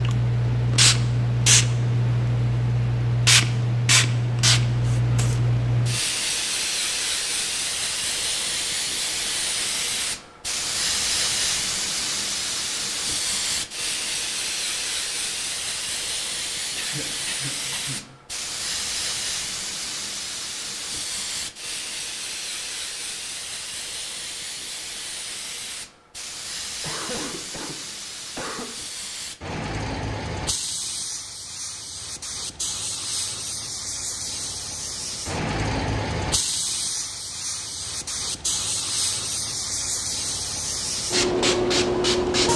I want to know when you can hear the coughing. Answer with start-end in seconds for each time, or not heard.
16.8-18.1, 26.8-28.7.